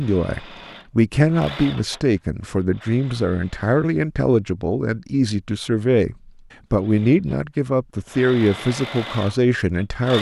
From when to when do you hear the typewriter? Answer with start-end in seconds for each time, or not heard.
not heard.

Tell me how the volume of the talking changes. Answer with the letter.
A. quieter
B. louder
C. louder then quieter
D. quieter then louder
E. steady
E.